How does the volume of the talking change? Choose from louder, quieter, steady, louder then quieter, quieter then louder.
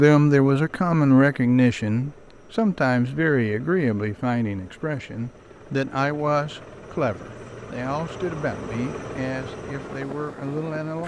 quieter.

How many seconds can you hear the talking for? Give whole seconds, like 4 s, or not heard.
11 s.